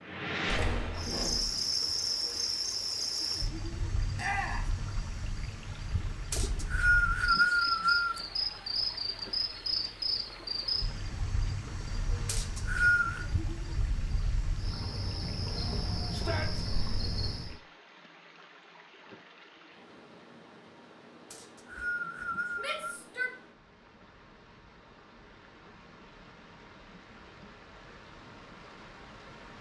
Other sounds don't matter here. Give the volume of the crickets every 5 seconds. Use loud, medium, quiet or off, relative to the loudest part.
loud, loud, medium, loud, off, off.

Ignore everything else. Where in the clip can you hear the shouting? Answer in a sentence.
You can hear the shouting from 4.2 to 4.7 s, from 16.1 to 16.8 s and from 22.6 to 23.4 s.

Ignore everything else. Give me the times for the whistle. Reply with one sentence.
You can hear the whistle from 6.3 to 8.2 s, from 12.2 to 13.2 s and from 21.3 to 23.0 s.